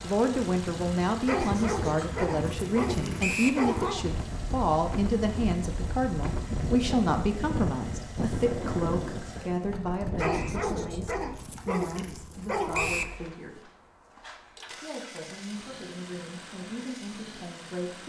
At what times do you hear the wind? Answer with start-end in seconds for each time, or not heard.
0.0-11.2.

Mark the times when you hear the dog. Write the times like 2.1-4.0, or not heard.
1.2-4.0, 10.2-12.9.